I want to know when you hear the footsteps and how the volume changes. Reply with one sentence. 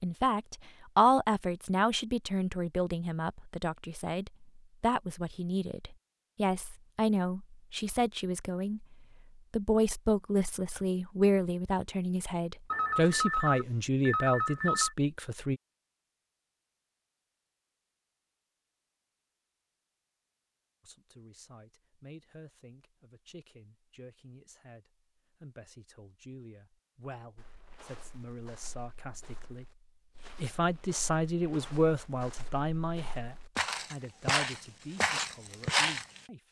You can hear the footsteps from 27.4 to 36.2 s, getting louder.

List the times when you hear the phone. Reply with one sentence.
The phone can be heard from 12.7 to 14.9 s.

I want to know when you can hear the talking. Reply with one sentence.
You can hear the talking from 0.0 to 15.6 s and from 20.8 to 36.4 s.